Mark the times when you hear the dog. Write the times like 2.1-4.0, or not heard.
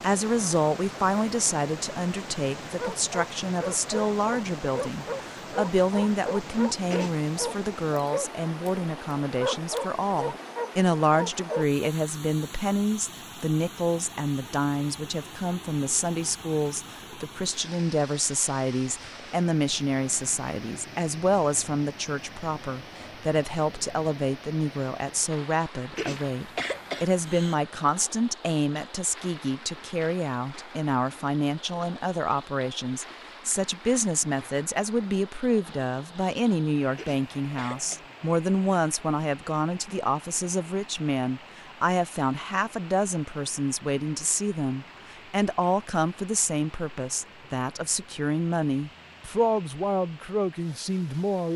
2.8-8.7, 9.4-11.9.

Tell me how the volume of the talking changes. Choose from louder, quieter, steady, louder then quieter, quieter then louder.
steady.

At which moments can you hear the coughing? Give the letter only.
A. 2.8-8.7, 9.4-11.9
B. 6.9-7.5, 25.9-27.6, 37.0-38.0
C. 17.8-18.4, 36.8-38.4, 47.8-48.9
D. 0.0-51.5
B.